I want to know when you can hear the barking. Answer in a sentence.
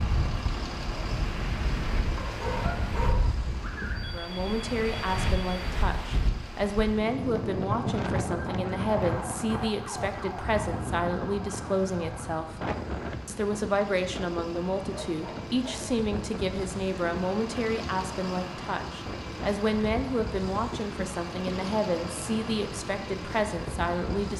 The barking can be heard from 2.1 to 4.2 s and from 14.9 to 15.9 s.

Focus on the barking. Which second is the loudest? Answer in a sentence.
The loudest moment of the barking is at 3 seconds.